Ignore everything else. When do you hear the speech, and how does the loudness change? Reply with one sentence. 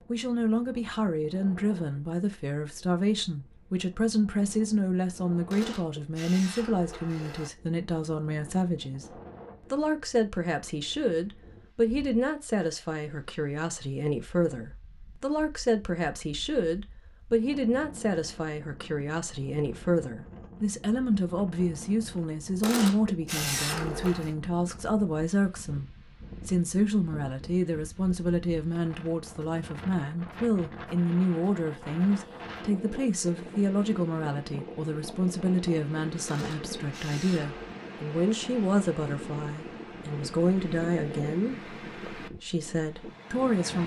You can hear the speech from 0.1 to 43.8 s, at a steady volume.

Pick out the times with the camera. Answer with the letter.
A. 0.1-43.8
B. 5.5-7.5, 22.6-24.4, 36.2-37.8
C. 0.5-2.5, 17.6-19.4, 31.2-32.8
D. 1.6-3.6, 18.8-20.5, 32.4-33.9
B.